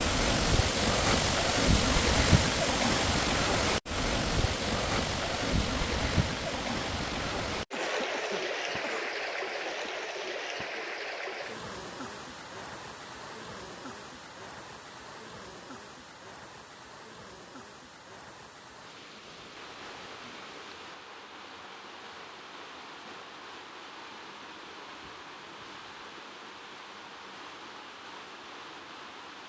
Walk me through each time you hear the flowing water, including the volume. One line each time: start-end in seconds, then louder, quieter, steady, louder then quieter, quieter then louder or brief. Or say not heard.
0.0-29.4 quieter.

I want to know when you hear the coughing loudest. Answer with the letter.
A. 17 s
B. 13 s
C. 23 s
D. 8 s
D.